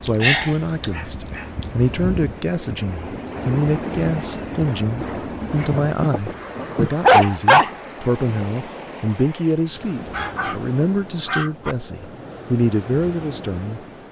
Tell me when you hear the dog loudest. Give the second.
7 s.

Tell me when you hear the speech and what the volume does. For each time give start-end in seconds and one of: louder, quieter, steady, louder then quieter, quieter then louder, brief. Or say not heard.
0.0-13.8 steady.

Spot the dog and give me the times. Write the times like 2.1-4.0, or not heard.
0.1-1.4, 5.5-7.7, 9.8-10.6, 11.2-11.8.